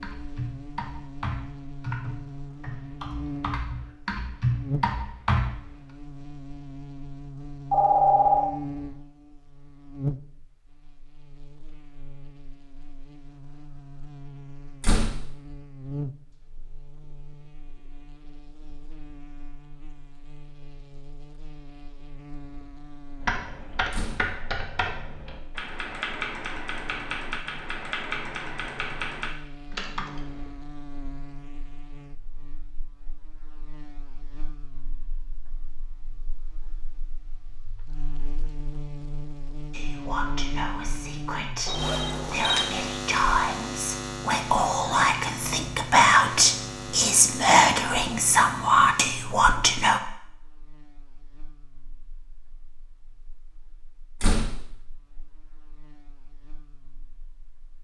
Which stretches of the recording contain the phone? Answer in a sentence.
The phone can be heard from 7.7 to 8.5 s and from 41.6 to 42.7 s.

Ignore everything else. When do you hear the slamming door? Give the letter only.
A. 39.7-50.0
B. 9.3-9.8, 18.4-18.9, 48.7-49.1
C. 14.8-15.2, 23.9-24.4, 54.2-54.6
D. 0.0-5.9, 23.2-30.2
C.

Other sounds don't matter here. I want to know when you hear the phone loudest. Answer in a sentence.
The volume of the phone peaks at 8 seconds.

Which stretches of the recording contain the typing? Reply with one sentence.
You can hear the typing from 0.0 to 5.9 s and from 23.2 to 30.2 s.